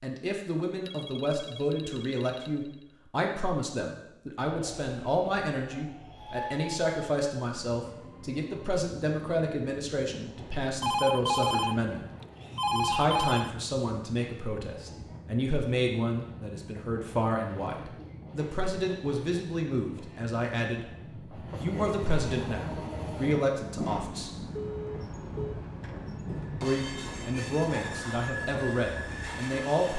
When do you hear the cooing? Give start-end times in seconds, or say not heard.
not heard.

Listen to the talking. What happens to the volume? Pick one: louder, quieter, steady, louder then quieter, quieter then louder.
steady.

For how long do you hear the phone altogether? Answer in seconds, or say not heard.
5 s.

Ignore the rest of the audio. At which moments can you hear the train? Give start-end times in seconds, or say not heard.
4.5-29.9.